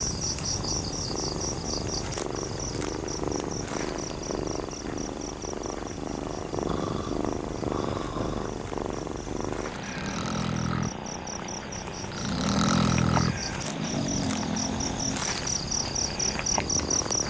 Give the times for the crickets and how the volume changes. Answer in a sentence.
The crickets can be heard from 0.0 to 17.2 s, getting quieter then louder.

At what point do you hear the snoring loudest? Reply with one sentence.
The volume of the snoring peaks at 13 seconds.